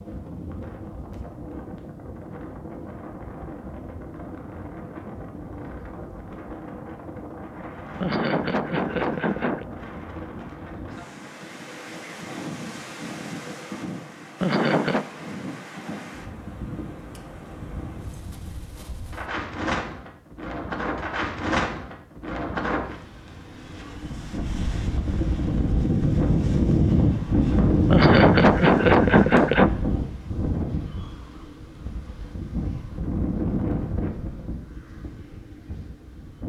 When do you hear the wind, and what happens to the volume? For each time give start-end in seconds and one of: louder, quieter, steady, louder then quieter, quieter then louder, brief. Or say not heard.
0.0-36.4 louder then quieter.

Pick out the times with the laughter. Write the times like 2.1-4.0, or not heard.
8.0-9.7, 14.4-15.1, 27.9-29.7.